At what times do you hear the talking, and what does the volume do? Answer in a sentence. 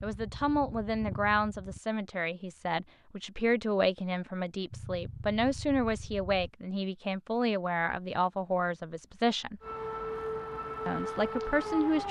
You can hear the talking from 0.0 to 9.6 s, at a steady volume; and briefly from 10.8 to 12.0 s.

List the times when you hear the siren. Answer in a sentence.
You can hear the siren from 9.6 to 12.0 s.